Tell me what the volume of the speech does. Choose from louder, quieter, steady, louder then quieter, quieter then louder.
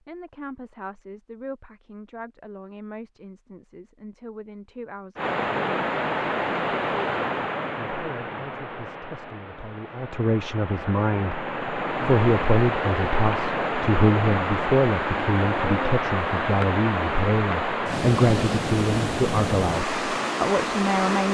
louder.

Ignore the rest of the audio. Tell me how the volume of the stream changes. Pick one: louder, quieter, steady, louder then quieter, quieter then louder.
quieter then louder.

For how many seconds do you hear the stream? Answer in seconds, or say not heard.
16 s.